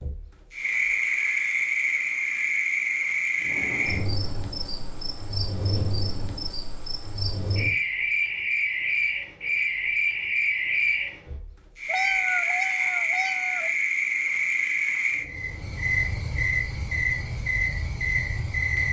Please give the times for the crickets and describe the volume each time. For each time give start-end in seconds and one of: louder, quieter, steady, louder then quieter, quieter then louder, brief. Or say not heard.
0.0-18.8 quieter then louder.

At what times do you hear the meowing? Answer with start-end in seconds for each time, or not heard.
11.8-13.8.